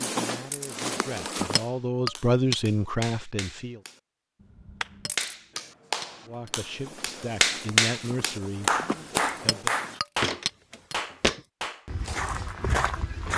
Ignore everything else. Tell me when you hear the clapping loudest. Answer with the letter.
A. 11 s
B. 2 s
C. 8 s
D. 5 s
C.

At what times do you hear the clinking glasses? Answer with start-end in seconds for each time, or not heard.
1.6-2.5, 5.0-6.5, 9.4-10.9.